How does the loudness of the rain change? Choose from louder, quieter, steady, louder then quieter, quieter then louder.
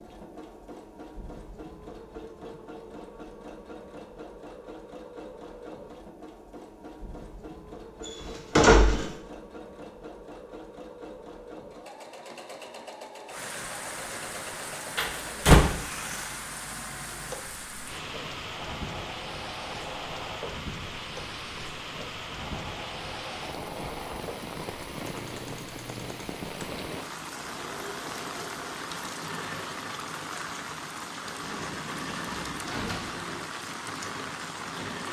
steady.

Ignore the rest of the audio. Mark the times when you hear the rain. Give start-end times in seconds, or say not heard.
13.3-35.0.